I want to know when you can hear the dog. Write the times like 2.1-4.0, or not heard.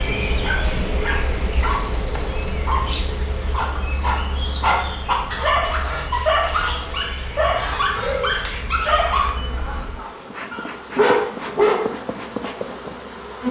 0.3-11.9.